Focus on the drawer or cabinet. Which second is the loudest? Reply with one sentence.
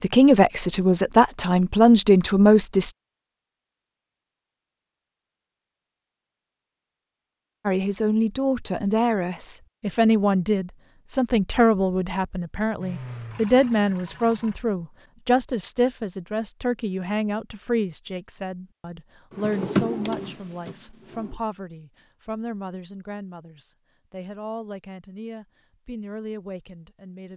The loudest moment of the drawer or cabinet is at 20 seconds.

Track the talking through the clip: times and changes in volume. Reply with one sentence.
The talking can be heard briefly from 0.0 to 2.9 s; and from 7.7 to 27.3 s, getting quieter.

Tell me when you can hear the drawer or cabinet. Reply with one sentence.
The drawer or cabinet can be heard from 19.3 to 21.4 s.